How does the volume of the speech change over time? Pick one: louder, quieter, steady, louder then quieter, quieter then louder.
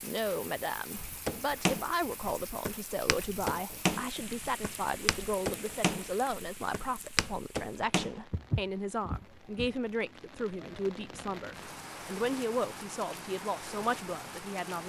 steady.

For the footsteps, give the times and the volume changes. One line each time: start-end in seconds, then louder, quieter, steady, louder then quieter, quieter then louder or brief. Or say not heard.
0.9-9.7 steady.